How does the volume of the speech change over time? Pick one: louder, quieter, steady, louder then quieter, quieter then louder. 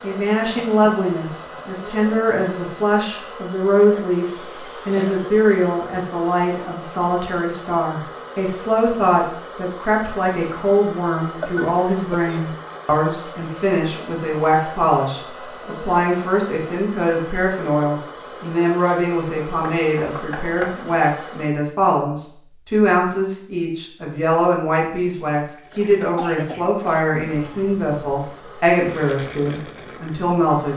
steady.